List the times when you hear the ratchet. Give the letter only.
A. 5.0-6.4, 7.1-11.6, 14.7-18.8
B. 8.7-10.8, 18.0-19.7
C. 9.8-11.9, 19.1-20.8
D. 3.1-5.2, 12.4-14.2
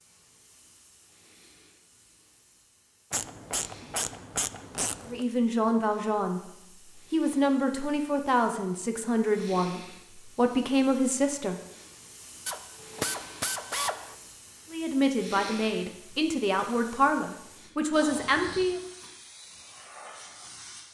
D.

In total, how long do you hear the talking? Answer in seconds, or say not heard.
10 s.